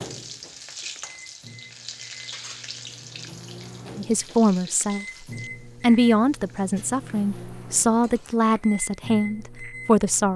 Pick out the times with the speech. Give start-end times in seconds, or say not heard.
4.0-10.3.